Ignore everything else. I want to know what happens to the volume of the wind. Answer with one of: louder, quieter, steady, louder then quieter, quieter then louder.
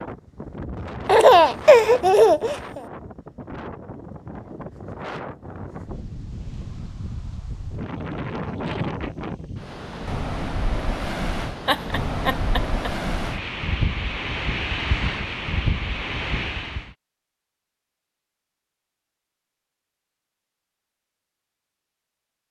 louder.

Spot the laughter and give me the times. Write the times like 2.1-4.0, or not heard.
1.1-2.8, 11.7-12.9.